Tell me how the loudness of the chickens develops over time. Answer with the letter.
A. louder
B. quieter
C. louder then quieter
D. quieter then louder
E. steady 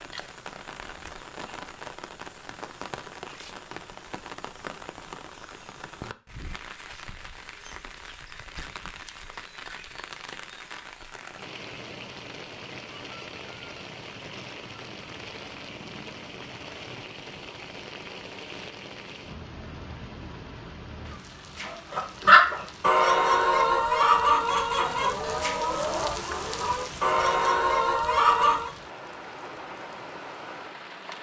D.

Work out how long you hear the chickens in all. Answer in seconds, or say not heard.
7 s.